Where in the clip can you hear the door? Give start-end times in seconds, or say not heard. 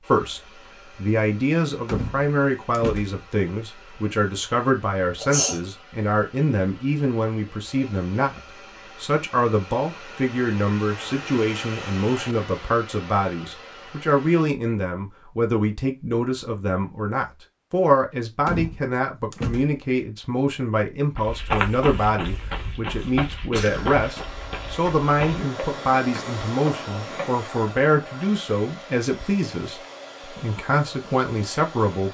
1.9-3.2, 18.4-19.8.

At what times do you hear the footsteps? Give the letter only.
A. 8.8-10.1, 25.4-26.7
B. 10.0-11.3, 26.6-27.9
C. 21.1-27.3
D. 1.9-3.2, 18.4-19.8
C.